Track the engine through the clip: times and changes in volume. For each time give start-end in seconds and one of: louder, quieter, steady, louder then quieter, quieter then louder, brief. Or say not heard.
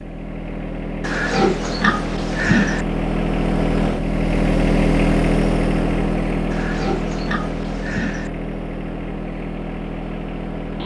0.0-10.8 louder then quieter.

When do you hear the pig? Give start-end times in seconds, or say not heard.
1.0-2.9, 6.5-8.3.